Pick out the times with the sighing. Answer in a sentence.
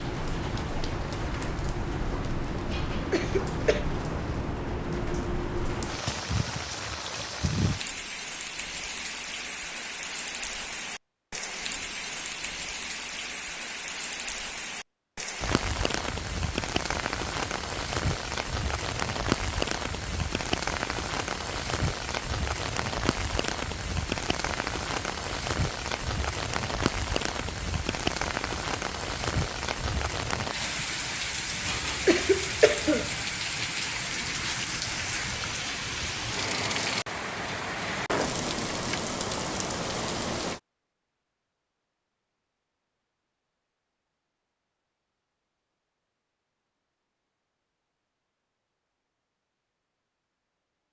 You can't hear the sighing here.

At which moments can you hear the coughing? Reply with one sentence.
You can hear the coughing from 2.7 to 3.9 s and from 31.6 to 33.1 s.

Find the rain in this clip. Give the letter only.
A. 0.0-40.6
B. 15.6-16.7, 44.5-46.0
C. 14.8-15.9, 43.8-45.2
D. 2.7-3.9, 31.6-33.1
A.